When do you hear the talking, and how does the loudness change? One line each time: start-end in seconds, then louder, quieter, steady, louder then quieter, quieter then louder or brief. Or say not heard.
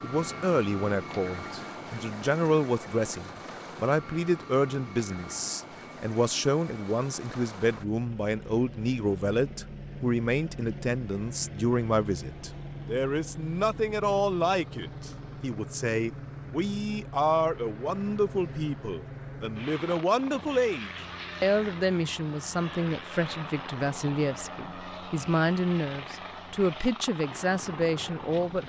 0.0-28.6 steady.